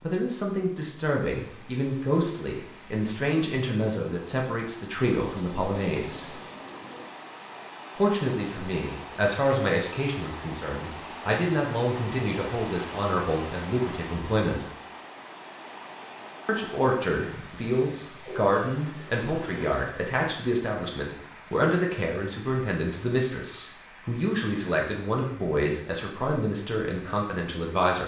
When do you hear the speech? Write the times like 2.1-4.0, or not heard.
0.0-6.3, 8.0-14.7, 16.4-28.0.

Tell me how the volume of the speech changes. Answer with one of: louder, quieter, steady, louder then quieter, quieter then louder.
steady.